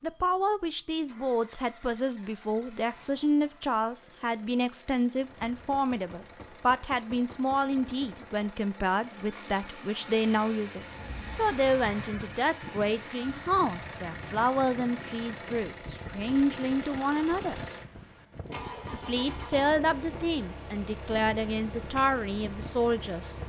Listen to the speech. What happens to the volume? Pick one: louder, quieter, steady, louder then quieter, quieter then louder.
steady.